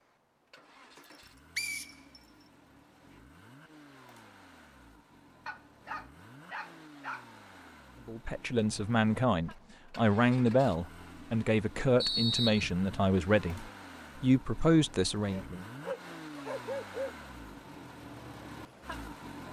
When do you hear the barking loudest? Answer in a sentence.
The loudest moment of the barking is at 17 seconds.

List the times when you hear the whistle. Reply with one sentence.
The whistle can be heard from 1.6 to 2.2 s and from 12.0 to 12.7 s.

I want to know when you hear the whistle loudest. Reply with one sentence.
The loudest moment of the whistle is at 12 seconds.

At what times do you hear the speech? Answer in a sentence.
The speech can be heard from 8.1 to 15.6 s.